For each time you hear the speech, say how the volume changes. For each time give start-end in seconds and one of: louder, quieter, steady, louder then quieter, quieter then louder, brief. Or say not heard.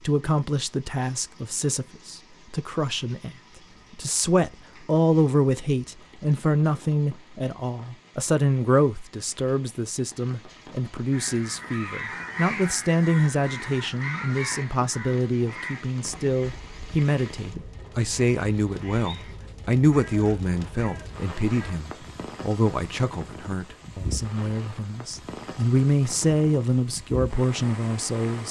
0.1-28.4 steady.